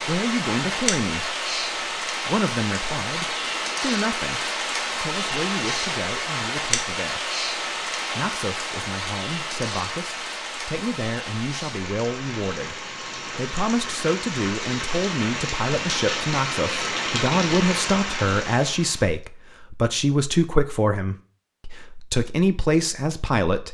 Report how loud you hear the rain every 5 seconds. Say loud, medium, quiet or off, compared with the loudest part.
loud, loud, medium, loud, off.